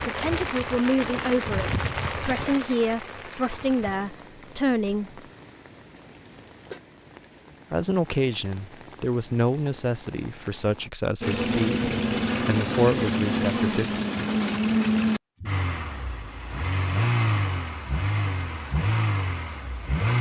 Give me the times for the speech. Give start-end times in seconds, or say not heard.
0.0-5.2, 7.7-14.1.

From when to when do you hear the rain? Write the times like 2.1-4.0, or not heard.
0.0-10.9.